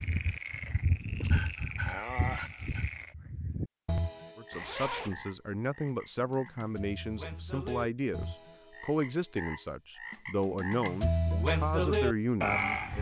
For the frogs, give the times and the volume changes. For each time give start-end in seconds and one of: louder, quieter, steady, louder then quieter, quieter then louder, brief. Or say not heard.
0.0-12.9 quieter then louder.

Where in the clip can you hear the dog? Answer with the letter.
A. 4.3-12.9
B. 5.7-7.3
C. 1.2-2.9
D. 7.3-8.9
C.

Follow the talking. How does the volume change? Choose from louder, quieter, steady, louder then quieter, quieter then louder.
steady.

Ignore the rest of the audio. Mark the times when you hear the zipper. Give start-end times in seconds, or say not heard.
4.5-5.2.